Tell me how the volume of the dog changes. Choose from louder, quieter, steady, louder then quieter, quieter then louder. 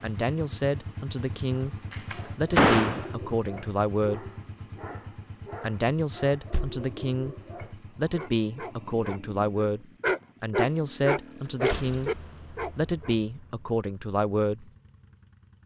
louder.